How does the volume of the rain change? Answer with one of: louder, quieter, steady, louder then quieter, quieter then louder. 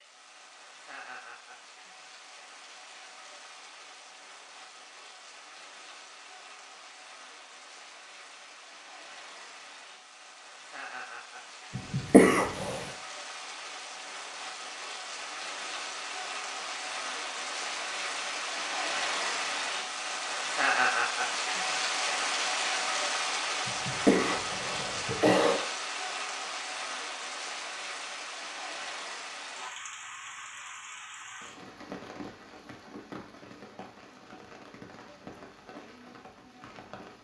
louder then quieter.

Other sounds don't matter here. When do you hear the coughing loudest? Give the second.
12 s.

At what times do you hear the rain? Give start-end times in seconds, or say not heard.
0.0-37.1.